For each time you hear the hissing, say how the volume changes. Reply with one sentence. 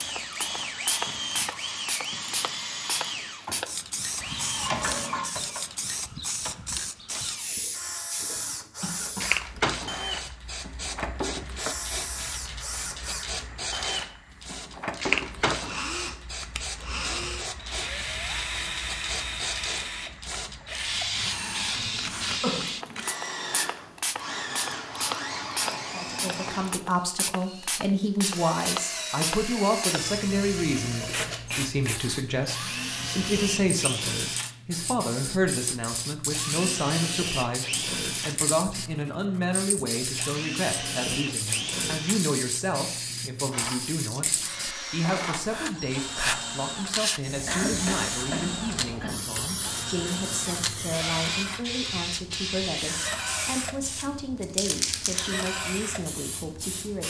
The hissing can be heard from 0.0 to 57.0 s, at a steady volume.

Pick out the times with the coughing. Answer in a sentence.
The coughing can be heard from 8.8 to 9.3 s, from 22.0 to 22.6 s and from 47.5 to 49.2 s.